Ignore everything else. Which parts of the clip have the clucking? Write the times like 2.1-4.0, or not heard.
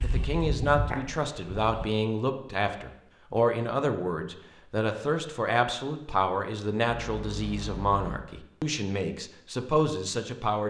0.0-1.9.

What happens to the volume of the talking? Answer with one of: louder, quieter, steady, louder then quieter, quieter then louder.
steady.